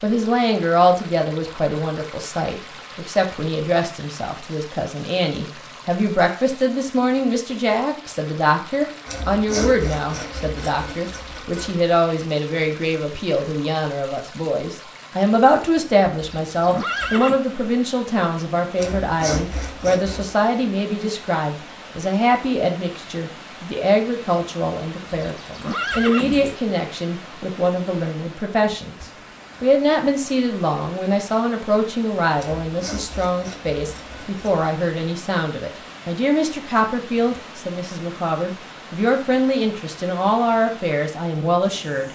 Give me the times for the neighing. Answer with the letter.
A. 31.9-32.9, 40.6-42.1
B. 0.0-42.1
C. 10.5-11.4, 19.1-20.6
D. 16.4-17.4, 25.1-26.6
D.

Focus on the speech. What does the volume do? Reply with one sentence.
The loudness of the speech stays about the same.